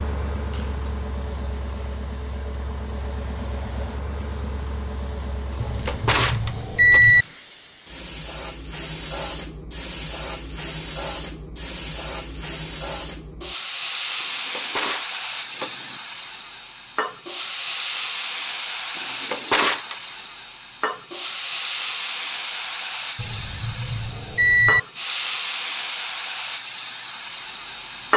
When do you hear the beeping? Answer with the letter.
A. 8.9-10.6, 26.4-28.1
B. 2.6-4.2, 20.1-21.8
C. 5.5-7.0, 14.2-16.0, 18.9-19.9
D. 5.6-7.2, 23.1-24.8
D.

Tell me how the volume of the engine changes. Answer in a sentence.
The loudness of the engine stays about the same.